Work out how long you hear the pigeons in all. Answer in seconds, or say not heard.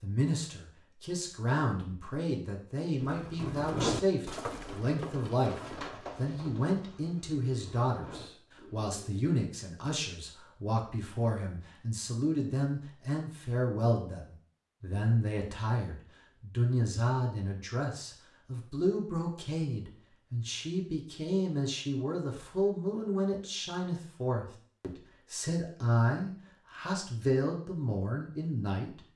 6 s.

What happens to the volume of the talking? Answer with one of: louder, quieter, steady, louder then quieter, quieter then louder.
steady.